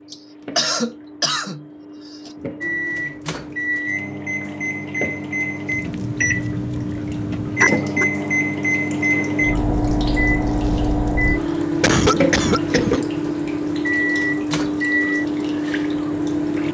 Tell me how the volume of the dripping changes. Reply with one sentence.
The loudness of the dripping goes up.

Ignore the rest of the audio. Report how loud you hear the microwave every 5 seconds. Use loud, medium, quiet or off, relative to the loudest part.
loud, loud, loud, medium.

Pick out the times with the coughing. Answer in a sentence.
The coughing can be heard from 0.1 to 2.3 s, from 7.5 to 8.1 s and from 11.4 to 13.1 s.